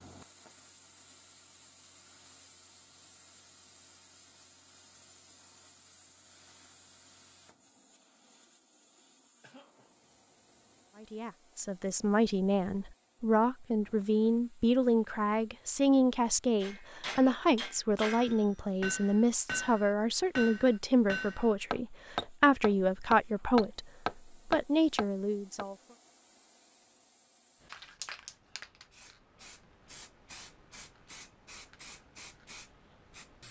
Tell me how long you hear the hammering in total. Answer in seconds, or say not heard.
9 s.